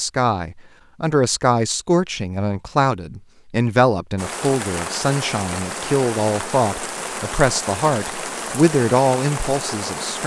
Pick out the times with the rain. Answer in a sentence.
The rain can be heard from 4.2 to 10.2 s.